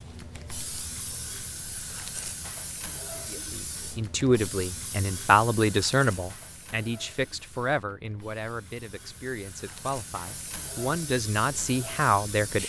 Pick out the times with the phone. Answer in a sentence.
You can't hear the phone here.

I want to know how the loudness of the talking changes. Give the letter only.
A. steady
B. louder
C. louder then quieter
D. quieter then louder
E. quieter
D.